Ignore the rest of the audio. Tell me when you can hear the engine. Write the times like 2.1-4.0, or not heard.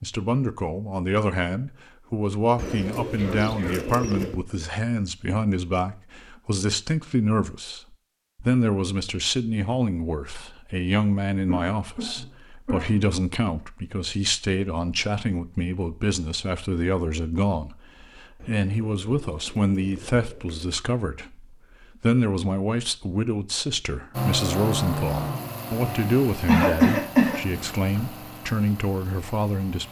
24.1-29.8.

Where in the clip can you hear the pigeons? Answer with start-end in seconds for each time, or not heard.
2.5-4.4, 18.4-20.8.